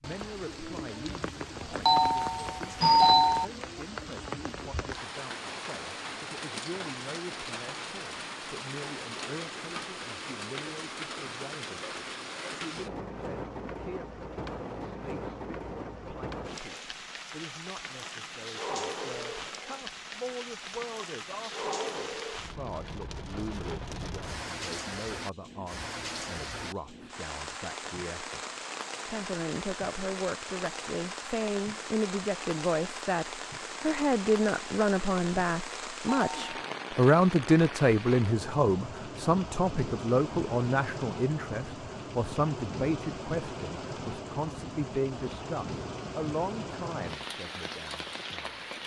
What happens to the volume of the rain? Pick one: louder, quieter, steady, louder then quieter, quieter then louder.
steady.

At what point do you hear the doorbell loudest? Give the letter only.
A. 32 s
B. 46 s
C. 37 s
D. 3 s
D.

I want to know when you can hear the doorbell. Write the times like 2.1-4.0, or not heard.
1.9-3.5, 36.0-36.5.